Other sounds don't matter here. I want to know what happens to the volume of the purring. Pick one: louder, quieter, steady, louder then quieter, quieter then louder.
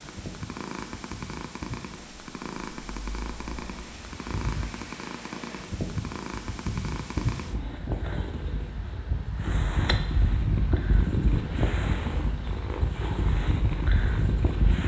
steady.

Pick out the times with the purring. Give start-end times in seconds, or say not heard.
0.0-14.8.